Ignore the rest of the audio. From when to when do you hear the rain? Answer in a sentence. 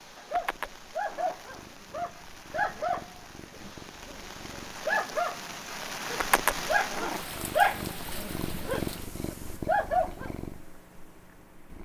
You can hear the rain from 0.0 to 9.6 s.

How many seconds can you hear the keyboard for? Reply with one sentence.
You can't hear the keyboard here.